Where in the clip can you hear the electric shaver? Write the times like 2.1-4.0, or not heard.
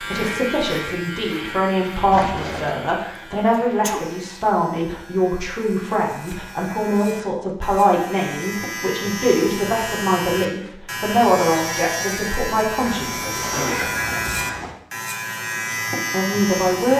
0.0-16.9.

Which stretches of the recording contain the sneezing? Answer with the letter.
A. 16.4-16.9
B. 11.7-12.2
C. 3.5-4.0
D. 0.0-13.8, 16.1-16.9
C.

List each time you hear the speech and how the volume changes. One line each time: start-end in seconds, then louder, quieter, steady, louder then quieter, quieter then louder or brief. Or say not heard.
0.0-13.8 steady
16.1-16.9 brief.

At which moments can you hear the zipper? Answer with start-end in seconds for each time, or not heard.
2.1-2.8, 12.8-14.8.